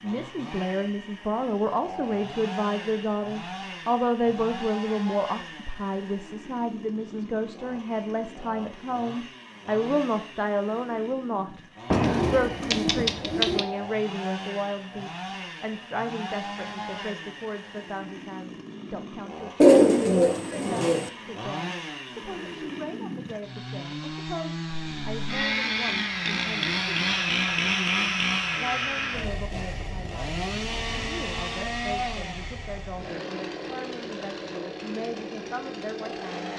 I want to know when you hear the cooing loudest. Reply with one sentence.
The volume of the cooing peaks at 20 seconds.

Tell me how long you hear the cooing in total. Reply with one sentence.
You can hear the cooing for 3 seconds altogether.